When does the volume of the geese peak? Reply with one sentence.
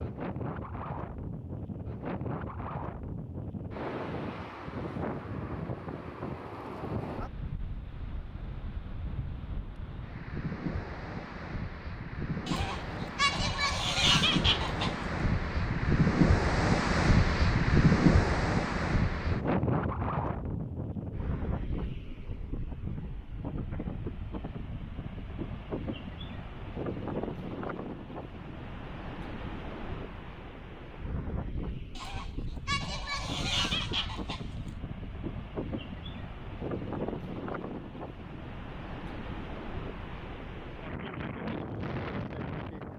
The loudest moment of the geese is at 14 seconds.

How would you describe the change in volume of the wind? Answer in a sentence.
The loudness of the wind goes up, then down.